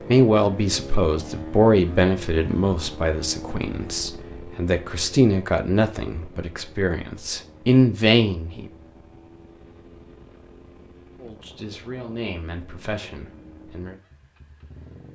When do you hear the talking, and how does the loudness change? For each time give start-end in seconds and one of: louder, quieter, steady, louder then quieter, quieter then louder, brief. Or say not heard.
0.1-8.7 quieter then louder
11.2-13.9 brief.